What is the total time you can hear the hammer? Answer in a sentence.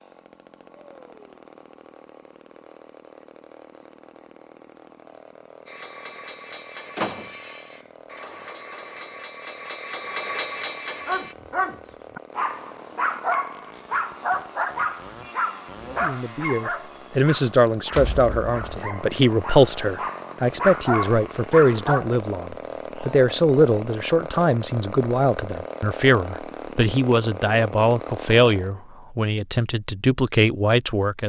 You can hear the hammer for 6 seconds altogether.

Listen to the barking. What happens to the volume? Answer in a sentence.
The volume of the barking goes down, then up.